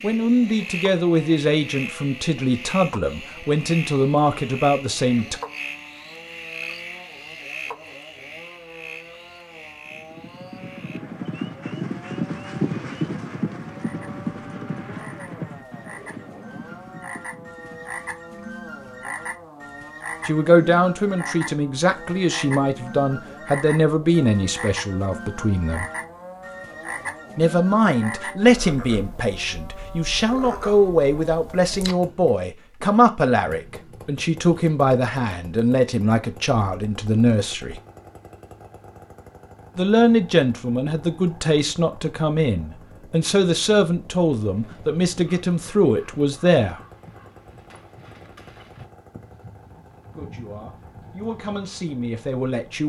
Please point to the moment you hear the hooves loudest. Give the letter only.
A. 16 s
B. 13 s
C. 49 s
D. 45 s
B.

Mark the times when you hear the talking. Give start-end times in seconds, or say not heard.
0.0-5.4, 20.2-25.9, 27.4-37.8, 39.8-46.8, 50.1-52.8.